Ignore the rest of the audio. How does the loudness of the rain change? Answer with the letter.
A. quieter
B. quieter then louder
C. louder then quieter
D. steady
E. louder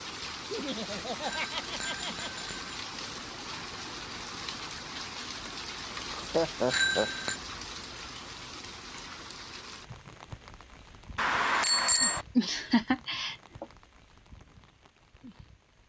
A.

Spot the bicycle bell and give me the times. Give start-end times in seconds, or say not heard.
1.2-2.6, 6.7-7.3, 11.2-12.2.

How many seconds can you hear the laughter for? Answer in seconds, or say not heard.
4 s.